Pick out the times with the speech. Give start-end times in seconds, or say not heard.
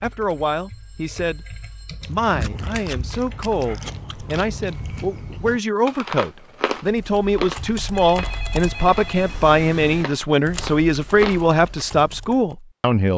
0.0-13.1.